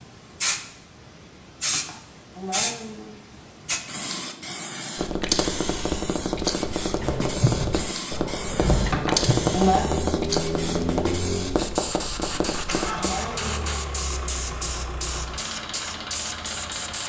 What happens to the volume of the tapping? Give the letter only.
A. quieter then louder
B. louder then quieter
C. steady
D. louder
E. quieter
C.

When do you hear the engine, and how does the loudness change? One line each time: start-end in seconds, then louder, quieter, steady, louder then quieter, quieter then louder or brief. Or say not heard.
7.0-17.0 quieter.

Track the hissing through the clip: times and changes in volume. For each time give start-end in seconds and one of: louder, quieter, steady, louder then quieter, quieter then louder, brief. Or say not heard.
0.0-17.0 steady.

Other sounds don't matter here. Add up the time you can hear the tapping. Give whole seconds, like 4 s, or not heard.
8 s.